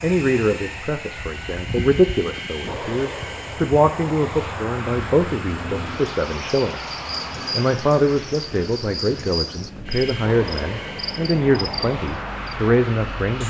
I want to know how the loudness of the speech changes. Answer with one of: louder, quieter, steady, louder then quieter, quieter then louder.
steady.